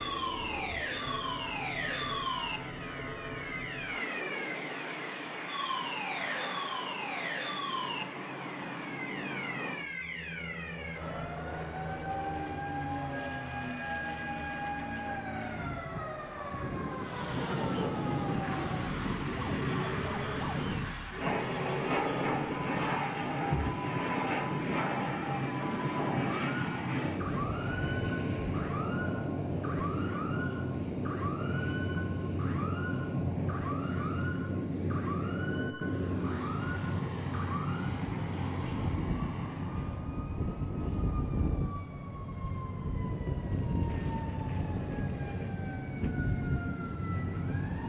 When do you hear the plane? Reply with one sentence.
You can hear the plane from 0.0 to 47.8 s.